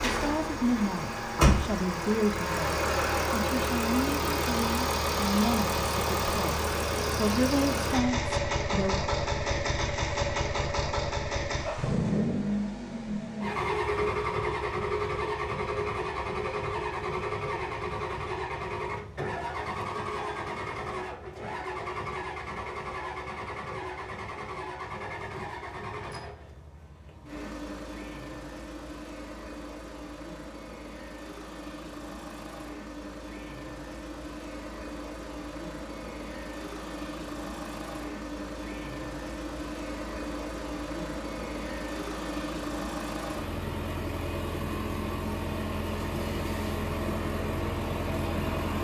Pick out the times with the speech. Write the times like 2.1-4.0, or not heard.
0.1-9.0.